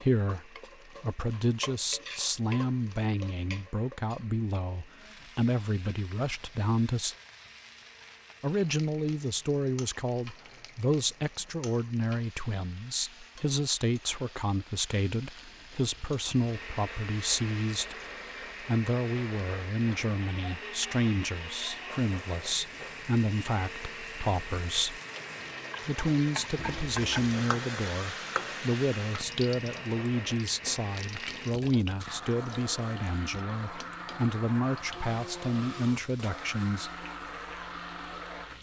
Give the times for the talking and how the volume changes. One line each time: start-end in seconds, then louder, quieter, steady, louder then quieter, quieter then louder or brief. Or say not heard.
0.0-7.2 steady
8.4-25.0 steady
25.9-36.9 steady.